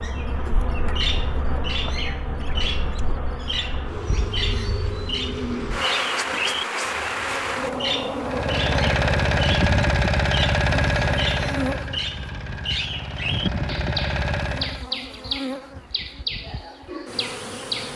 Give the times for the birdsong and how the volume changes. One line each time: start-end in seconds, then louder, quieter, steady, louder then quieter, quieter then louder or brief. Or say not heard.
0.0-17.9 steady.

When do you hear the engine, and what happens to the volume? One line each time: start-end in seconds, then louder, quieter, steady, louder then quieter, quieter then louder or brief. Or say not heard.
8.2-14.8 quieter then louder.